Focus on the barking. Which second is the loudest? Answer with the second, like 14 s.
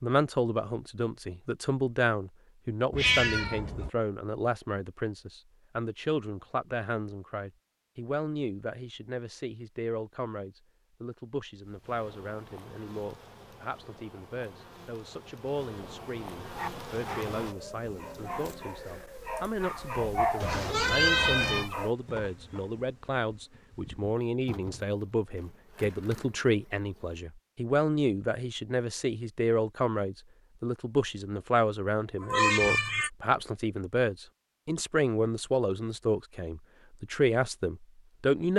20 s.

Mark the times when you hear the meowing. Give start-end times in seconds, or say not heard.
2.9-3.9, 20.4-21.7, 32.2-33.1.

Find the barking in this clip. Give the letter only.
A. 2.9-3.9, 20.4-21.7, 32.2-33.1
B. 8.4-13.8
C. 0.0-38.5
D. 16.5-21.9
D.